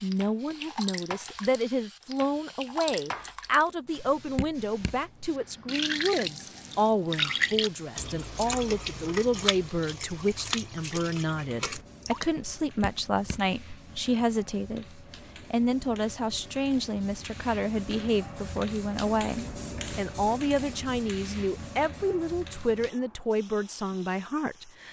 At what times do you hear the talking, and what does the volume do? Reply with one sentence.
The talking can be heard from 0.0 to 24.8 s, at a steady volume.